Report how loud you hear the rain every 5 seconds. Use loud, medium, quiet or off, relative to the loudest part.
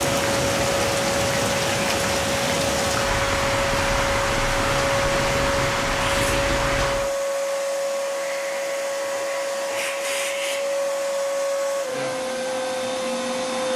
loud, loud, off.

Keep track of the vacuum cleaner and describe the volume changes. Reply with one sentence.
The volume of the vacuum cleaner stays about the same.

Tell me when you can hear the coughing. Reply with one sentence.
The coughing can't be heard in this clip.